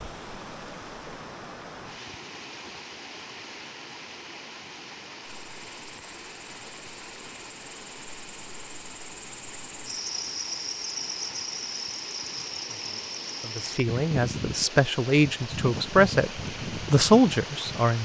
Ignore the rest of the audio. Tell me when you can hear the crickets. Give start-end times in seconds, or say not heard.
5.2-17.9.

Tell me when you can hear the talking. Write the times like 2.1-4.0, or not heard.
13.4-18.0.